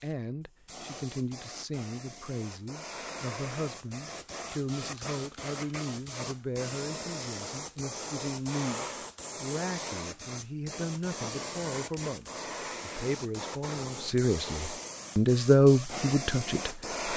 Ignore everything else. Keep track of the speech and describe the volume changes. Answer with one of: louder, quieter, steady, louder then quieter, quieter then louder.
louder.